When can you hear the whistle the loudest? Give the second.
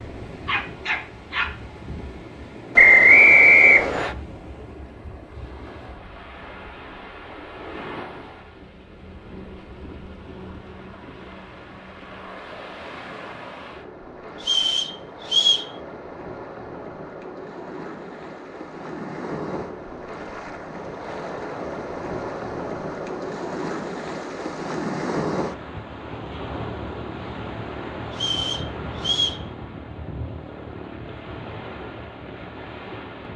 3 s.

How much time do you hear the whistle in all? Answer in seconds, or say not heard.
4 s.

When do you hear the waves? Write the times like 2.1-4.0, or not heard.
0.0-33.3.